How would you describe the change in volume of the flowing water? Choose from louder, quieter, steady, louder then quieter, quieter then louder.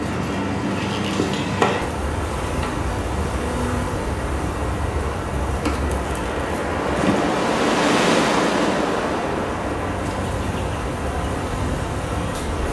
louder then quieter.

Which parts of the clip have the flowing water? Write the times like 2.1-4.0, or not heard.
0.0-12.6.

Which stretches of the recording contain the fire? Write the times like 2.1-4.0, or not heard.
not heard.